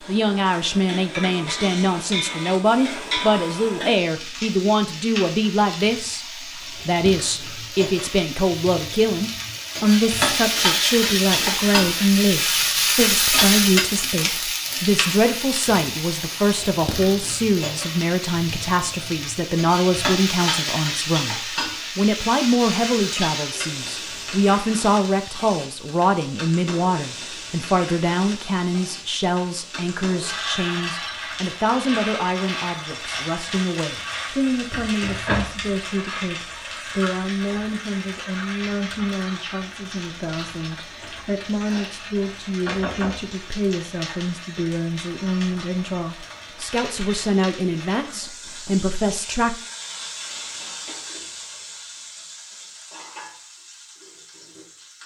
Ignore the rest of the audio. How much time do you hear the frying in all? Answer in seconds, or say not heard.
55 s.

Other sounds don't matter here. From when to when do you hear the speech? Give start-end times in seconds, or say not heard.
0.1-49.5.